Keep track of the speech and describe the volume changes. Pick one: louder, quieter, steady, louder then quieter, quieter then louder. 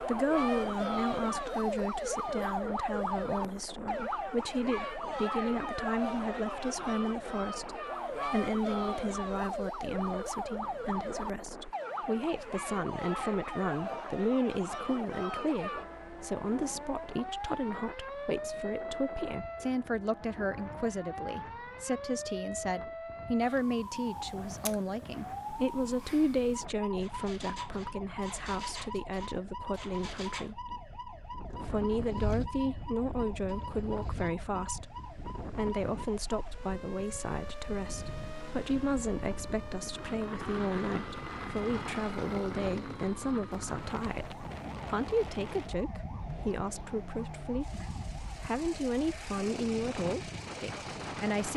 steady.